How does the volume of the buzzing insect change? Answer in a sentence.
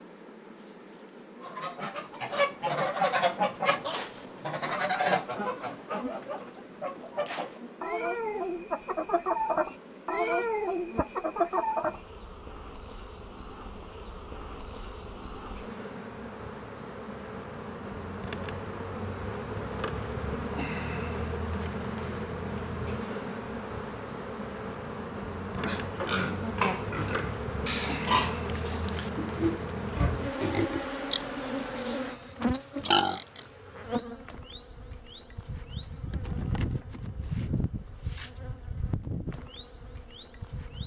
The loudness of the buzzing insect goes up.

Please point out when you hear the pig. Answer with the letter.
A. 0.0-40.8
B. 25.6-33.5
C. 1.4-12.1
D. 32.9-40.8
B.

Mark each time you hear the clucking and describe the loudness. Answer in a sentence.
The clucking can be heard from 1.4 to 12.1 s, getting quieter then louder.